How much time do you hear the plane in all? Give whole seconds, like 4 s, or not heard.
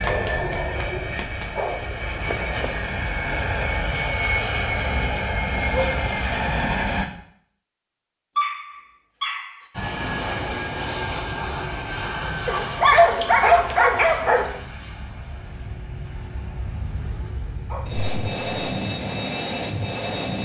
18 s.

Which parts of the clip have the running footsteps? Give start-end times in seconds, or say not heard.
0.0-2.9.